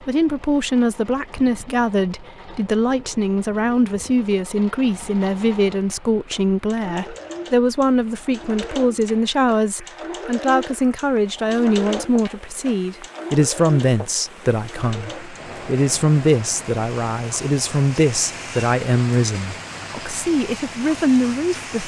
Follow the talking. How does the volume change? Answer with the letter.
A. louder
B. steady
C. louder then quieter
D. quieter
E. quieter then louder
B.